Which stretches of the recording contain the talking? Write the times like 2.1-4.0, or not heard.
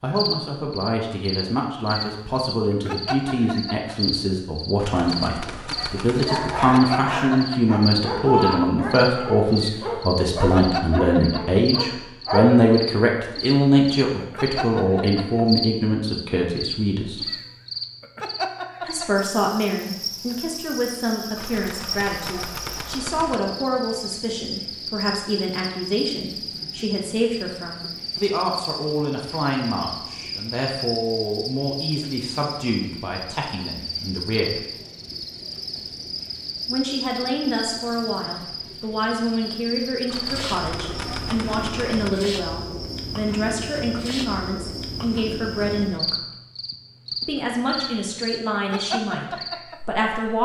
0.0-17.2, 18.9-34.6, 36.6-46.1, 47.2-50.3.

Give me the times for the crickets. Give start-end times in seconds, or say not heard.
0.1-50.0.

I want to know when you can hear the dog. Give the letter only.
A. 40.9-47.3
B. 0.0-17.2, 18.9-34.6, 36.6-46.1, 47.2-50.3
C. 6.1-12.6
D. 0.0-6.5
C.